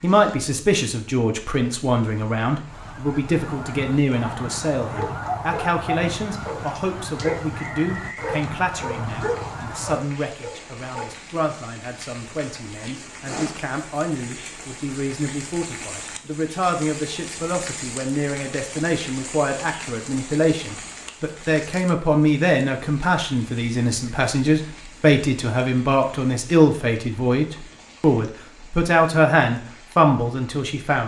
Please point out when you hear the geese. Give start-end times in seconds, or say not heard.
2.6-10.1.